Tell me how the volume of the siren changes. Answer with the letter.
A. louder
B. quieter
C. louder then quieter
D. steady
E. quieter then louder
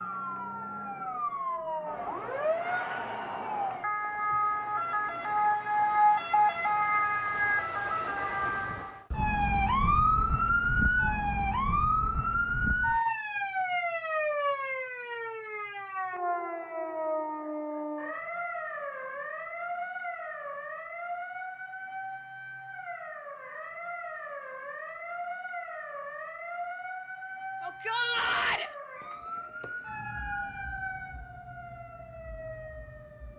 B.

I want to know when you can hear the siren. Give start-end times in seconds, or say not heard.
0.0-33.3.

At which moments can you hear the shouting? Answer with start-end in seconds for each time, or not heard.
27.6-28.7.